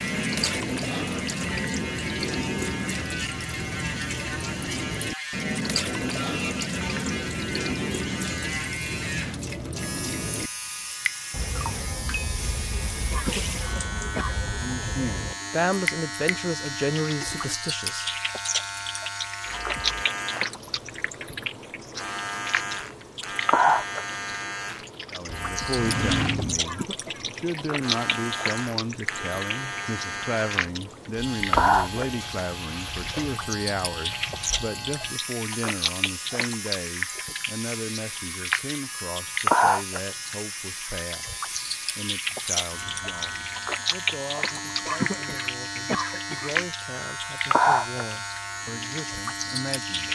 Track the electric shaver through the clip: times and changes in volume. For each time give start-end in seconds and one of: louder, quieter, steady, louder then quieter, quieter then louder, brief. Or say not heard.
0.0-50.1 steady.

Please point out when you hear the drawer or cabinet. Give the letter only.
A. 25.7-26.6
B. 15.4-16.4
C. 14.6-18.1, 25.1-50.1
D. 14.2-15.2
A.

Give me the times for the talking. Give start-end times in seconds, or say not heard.
14.6-18.1, 25.1-50.1.